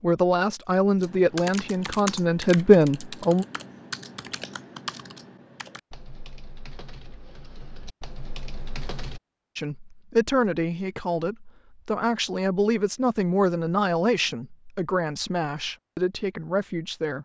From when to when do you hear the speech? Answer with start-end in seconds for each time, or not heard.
0.0-3.5, 9.6-17.2.